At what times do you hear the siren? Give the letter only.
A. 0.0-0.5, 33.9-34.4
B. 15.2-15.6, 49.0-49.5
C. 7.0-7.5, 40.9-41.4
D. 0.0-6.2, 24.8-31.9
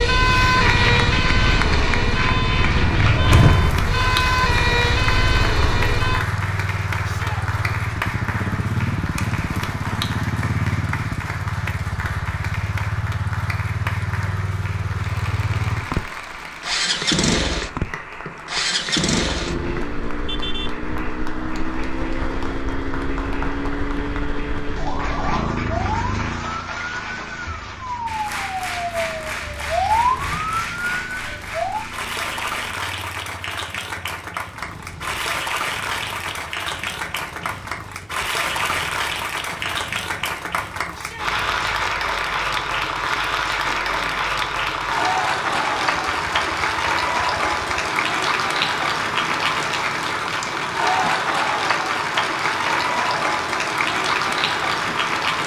D.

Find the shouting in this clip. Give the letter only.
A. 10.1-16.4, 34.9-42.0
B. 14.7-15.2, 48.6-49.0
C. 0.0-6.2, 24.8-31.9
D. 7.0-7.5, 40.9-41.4
D.